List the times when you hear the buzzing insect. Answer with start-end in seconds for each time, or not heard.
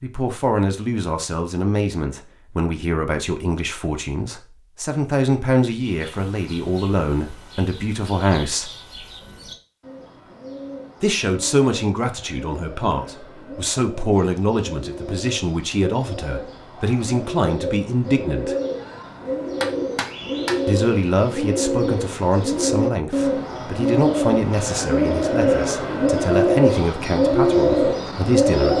not heard.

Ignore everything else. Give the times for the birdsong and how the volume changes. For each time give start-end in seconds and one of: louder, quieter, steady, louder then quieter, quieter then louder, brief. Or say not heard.
5.8-28.7 louder.